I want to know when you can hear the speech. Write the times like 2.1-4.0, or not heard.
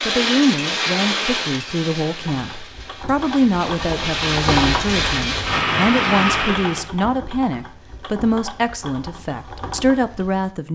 0.1-10.6.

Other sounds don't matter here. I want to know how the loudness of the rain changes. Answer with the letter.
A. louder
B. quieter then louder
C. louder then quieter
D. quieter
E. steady
B.